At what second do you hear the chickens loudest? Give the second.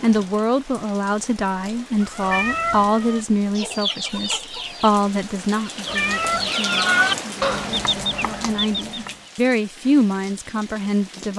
7 s.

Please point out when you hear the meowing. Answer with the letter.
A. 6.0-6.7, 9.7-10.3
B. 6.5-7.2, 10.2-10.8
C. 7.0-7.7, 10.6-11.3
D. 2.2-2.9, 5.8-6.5
D.